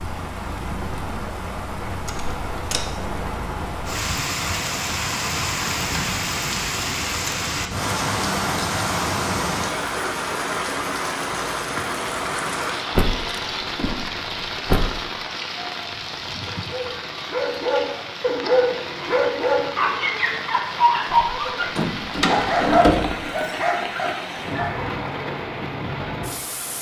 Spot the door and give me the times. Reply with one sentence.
You can hear the door from 2.0 to 2.9 s, from 12.9 to 15.1 s and from 21.1 to 23.3 s.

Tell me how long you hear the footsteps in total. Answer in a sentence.
The footsteps can't be heard in this clip.